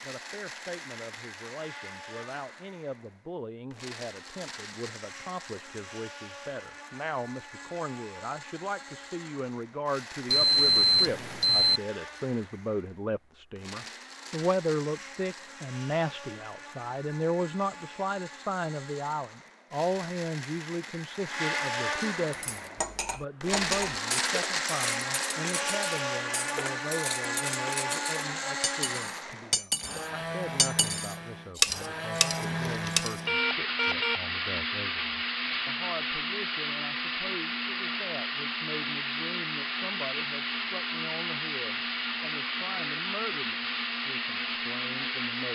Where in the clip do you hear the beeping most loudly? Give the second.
11 s.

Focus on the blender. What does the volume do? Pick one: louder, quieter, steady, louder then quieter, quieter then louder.
louder.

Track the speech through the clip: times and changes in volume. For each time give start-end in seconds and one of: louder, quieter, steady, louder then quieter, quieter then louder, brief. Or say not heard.
0.0-45.4 louder then quieter.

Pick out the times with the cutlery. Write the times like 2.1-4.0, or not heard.
22.3-33.2.